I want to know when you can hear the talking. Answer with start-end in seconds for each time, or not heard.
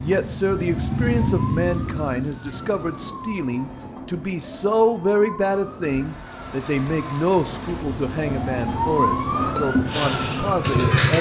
0.0-11.1.